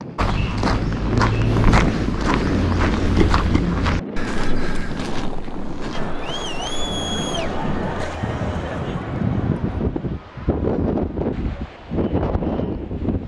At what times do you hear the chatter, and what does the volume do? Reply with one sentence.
The chatter can be heard from 5.9 to 13.1 s, getting quieter.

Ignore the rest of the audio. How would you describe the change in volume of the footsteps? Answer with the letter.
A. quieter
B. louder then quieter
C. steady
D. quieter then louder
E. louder
A.